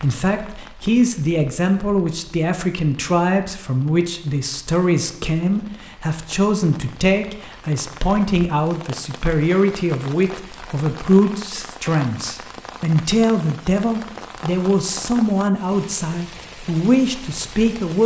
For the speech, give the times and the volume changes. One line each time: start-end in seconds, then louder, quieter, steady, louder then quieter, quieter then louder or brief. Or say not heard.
0.0-18.0 steady.